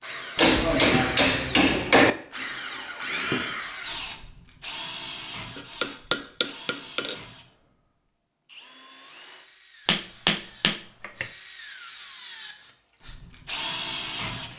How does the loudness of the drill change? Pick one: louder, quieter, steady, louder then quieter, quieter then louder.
quieter then louder.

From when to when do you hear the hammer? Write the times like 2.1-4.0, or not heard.
0.3-2.1, 5.8-7.2, 9.8-11.2.